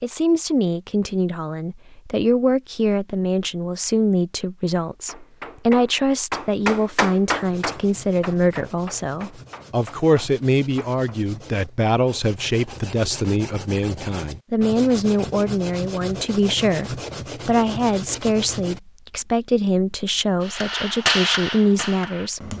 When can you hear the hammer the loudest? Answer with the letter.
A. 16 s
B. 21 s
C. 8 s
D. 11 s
B.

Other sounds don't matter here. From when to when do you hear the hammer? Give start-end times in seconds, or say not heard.
4.8-11.4, 20.4-22.5.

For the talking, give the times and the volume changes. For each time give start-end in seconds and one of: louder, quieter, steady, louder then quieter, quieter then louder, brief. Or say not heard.
0.0-22.5 steady.